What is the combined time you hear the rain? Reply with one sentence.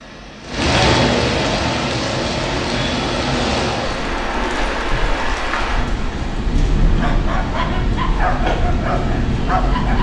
You can hear the rain for 10 seconds altogether.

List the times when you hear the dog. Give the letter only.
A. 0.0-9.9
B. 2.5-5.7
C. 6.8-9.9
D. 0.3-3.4
C.